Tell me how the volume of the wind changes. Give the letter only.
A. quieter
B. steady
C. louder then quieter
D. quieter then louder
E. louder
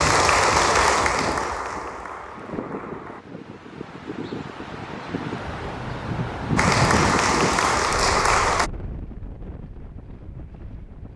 C.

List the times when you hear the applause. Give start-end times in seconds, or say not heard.
0.0-3.2, 6.5-8.7.